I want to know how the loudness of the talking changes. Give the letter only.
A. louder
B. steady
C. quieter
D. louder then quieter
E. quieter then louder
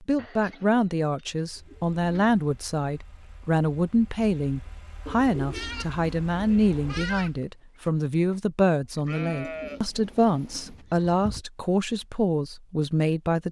B.